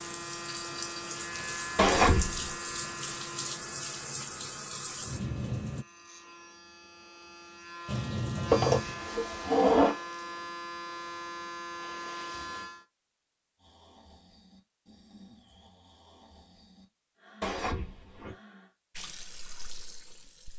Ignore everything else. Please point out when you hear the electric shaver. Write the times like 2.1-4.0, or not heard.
0.0-12.8.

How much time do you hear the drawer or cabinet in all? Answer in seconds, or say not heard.
3 s.